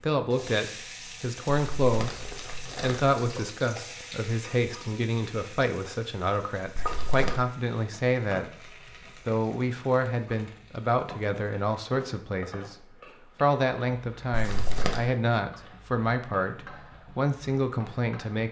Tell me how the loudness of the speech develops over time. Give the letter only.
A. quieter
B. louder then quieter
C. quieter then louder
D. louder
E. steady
E.